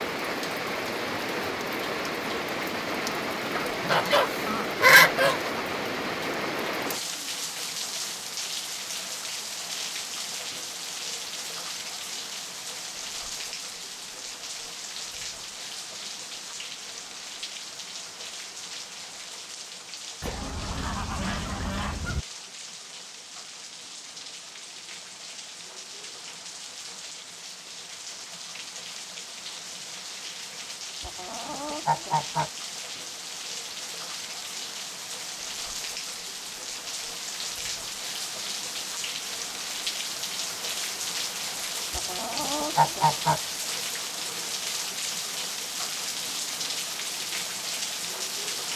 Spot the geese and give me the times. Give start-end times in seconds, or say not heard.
3.5-5.4, 20.2-22.2, 31.0-32.5, 41.9-43.4.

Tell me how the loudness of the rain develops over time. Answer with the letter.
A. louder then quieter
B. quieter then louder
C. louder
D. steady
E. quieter
B.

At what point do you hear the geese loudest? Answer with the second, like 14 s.
5 s.